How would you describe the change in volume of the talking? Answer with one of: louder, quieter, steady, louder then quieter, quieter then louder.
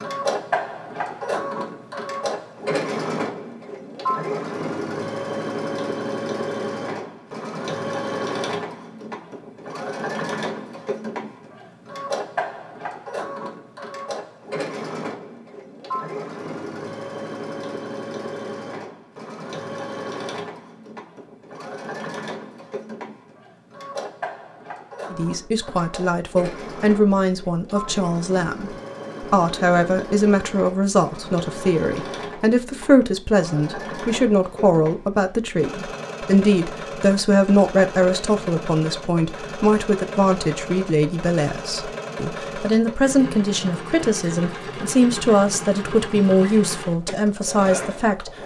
steady.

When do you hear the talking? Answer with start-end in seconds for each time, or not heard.
25.1-48.3.